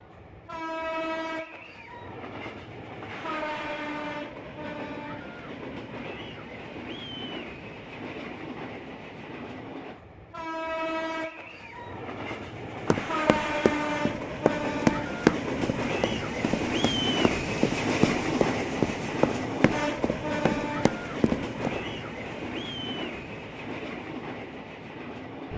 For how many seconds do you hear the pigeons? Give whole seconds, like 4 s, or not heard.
not heard.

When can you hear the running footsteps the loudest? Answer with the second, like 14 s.
15 s.